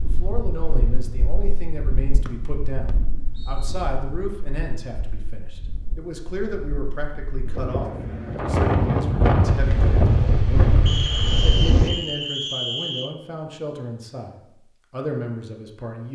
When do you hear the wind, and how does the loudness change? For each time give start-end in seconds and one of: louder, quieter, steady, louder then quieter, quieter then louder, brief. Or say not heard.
0.0-11.9 quieter then louder.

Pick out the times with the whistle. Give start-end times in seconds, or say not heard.
2.2-3.8, 10.8-13.1.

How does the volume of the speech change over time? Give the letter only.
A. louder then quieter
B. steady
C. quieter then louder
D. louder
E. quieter
B.